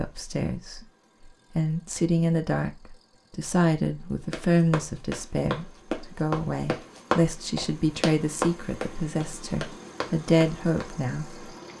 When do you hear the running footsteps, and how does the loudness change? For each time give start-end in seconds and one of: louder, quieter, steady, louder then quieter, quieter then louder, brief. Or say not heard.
4.3-10.8 louder then quieter.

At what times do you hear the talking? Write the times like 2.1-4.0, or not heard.
0.0-0.8, 1.6-11.4.